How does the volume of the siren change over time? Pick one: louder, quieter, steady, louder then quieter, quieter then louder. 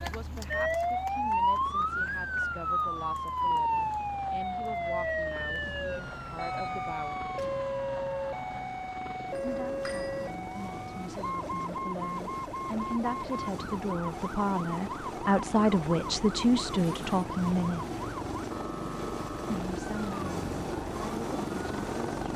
quieter.